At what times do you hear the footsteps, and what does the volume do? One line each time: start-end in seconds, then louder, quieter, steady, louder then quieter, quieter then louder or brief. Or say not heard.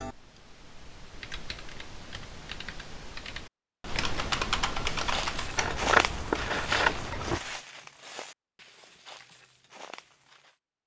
5.0-10.6 quieter.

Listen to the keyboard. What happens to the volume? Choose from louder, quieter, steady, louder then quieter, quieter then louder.
louder then quieter.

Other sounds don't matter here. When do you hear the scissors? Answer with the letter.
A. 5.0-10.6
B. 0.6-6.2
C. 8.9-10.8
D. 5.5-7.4
D.